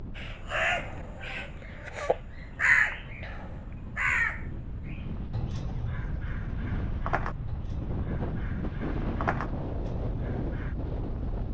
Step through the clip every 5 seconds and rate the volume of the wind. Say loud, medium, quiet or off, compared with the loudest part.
medium, loud, loud.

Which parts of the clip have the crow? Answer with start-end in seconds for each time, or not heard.
0.1-10.8.